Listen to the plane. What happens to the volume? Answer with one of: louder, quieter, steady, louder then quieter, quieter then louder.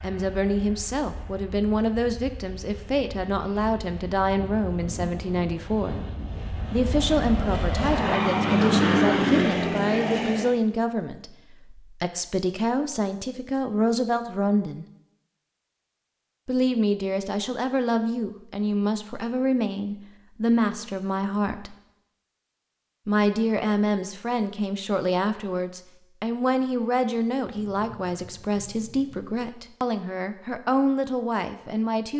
louder.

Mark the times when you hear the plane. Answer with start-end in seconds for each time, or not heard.
0.0-10.6.